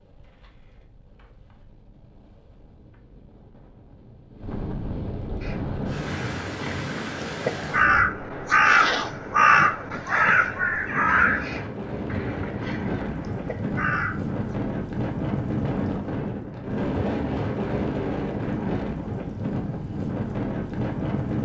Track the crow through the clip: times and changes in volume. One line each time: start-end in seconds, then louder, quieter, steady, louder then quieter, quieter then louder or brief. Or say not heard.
5.4-14.5 louder then quieter.